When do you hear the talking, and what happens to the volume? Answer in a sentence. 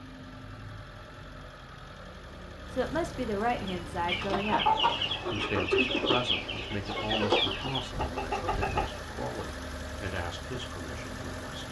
You can hear the talking from 2.7 to 11.6 s, getting quieter.